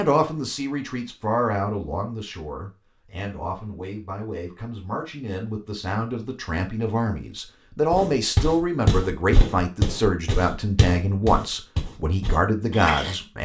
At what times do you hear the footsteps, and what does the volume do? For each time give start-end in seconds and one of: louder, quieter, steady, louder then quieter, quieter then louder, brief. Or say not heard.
7.9-13.2 quieter.